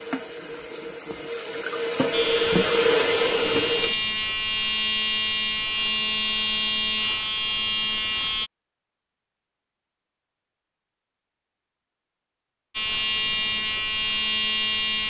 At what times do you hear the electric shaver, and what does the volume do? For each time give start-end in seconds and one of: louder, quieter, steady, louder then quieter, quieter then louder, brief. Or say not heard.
2.1-8.5 louder
12.7-15.0 brief.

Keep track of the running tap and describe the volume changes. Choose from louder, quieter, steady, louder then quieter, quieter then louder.
louder.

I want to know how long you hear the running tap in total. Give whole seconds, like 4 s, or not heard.
4 s.